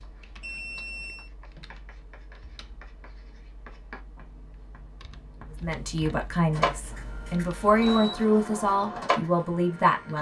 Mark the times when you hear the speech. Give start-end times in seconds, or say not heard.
5.6-10.1.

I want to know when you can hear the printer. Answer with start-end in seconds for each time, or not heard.
6.5-10.1.